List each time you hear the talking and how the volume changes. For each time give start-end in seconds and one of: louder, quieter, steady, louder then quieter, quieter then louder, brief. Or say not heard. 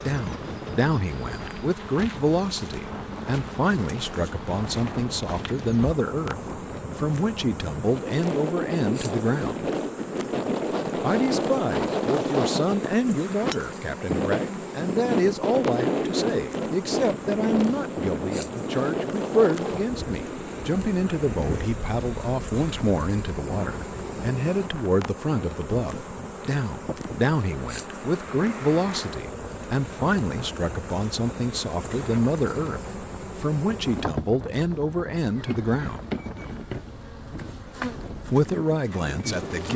0.0-9.7 steady
11.0-36.1 steady
38.3-39.7 brief.